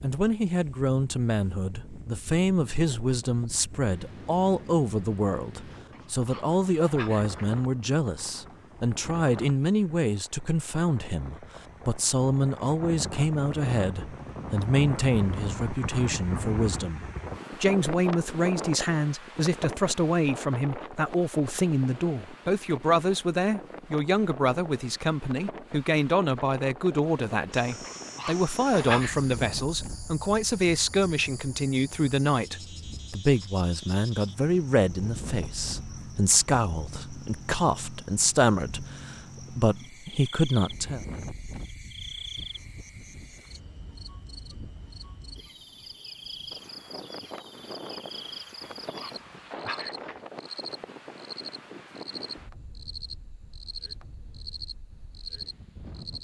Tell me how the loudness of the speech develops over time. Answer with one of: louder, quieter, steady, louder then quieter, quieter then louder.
steady.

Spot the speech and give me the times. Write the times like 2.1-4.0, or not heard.
0.0-41.0.